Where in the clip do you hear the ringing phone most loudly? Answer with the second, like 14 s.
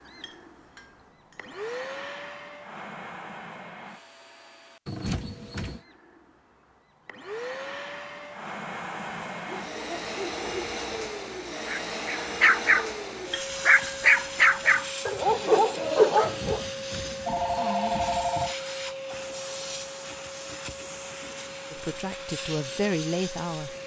18 s.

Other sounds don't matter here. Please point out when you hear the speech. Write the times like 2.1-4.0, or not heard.
21.7-23.8.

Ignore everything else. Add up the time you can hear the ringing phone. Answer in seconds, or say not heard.
3 s.